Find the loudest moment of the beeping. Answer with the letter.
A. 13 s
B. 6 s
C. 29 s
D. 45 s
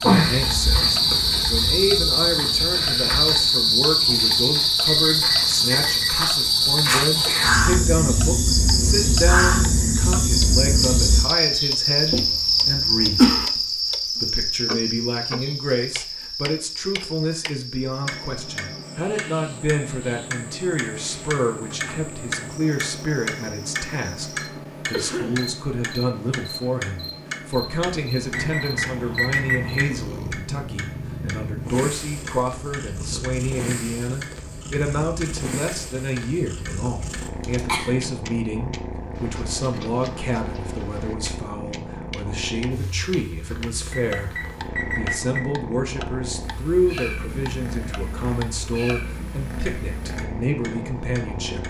C.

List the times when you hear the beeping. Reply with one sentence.
You can hear the beeping from 4.8 to 6.2 s, from 28.3 to 29.9 s and from 43.9 to 45.4 s.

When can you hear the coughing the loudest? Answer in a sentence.
The volume of the coughing peaks at 13 seconds.